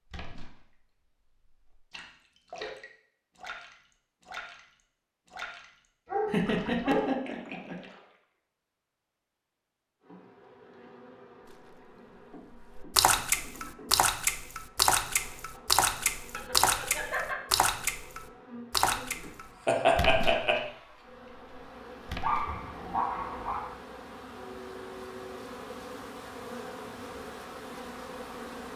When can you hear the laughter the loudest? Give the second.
20 s.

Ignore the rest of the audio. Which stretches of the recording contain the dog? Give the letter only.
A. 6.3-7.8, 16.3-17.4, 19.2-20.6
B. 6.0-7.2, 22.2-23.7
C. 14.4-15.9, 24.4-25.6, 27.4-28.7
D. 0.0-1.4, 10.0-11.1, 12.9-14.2
B.